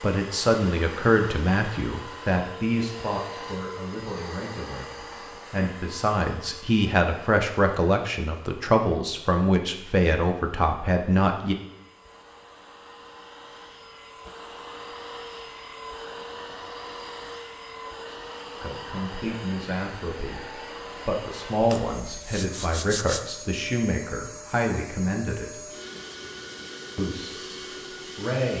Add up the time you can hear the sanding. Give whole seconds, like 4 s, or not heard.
2 s.